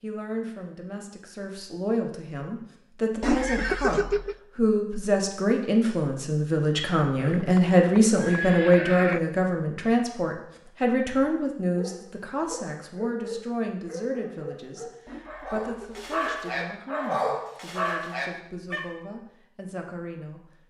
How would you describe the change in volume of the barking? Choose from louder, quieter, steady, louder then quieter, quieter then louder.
louder.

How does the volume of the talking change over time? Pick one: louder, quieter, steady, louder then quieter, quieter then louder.
louder then quieter.